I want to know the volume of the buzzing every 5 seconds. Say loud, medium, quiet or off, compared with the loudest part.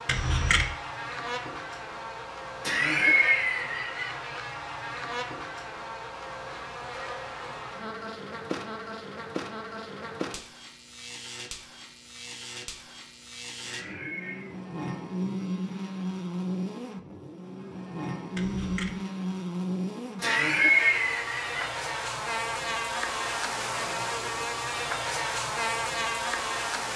medium, medium, medium, loud, loud, loud.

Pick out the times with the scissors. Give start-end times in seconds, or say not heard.
0.1-0.7, 18.4-18.9.